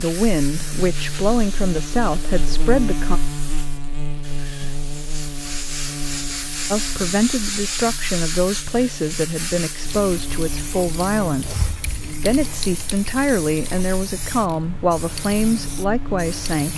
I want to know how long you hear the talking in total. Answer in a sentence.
You can hear the talking for 13 seconds altogether.